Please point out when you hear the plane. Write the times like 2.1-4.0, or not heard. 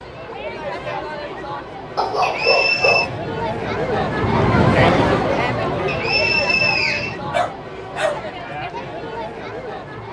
2.7-7.6.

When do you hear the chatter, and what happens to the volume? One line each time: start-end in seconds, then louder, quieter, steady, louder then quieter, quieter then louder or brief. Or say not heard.
0.0-10.0 louder then quieter.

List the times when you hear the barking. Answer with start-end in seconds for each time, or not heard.
1.9-3.2, 7.3-8.6.